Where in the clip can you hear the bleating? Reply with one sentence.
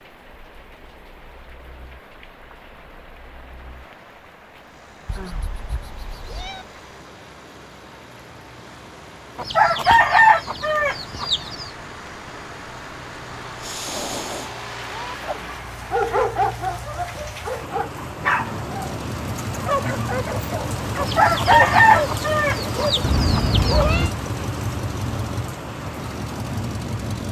The bleating can't be heard in this clip.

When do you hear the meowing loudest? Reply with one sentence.
The loudest moment of the meowing is at 24 seconds.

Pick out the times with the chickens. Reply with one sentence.
The chickens can be heard from 9.3 to 11.7 s and from 21.0 to 23.9 s.